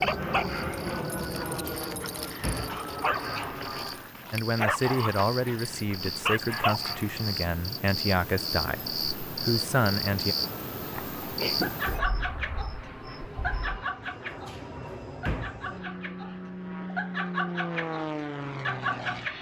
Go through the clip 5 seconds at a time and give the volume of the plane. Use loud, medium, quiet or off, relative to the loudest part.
loud, off, medium, loud.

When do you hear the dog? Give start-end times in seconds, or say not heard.
0.0-7.5, 11.6-19.3.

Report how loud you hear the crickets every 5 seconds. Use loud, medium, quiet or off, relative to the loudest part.
medium, loud, loud, off.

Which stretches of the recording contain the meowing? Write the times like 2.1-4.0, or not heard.
10.9-11.8.